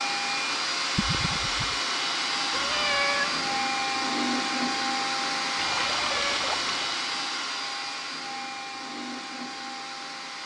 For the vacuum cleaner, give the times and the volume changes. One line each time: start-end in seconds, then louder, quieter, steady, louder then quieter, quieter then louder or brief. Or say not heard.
0.0-10.4 quieter.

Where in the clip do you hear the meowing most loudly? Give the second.
3 s.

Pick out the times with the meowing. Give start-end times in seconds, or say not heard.
2.5-3.6, 5.8-6.4.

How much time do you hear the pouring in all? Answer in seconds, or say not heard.
2 s.